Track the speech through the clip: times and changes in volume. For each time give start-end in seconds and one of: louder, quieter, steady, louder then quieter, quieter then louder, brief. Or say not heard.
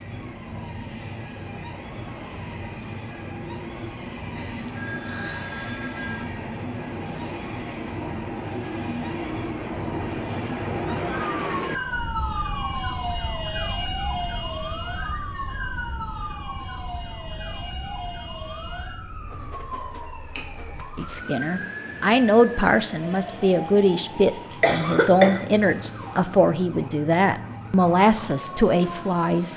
20.9-29.5 steady.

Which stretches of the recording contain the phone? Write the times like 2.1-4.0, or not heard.
4.3-6.2.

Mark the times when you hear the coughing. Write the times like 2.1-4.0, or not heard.
24.6-25.4.